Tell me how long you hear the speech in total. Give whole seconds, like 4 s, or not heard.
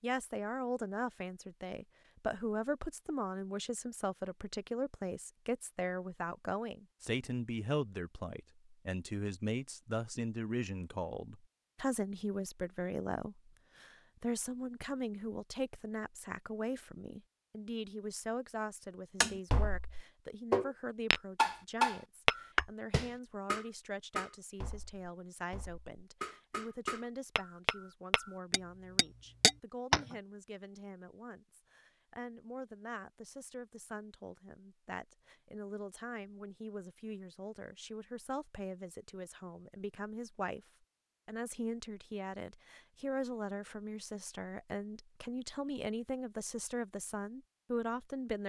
48 s.